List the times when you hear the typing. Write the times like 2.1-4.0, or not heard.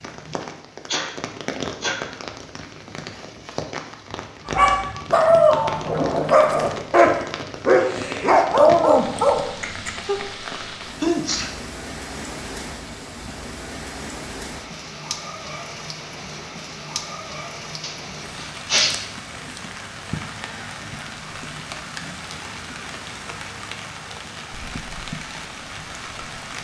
not heard.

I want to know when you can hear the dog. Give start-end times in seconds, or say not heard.
4.5-10.0.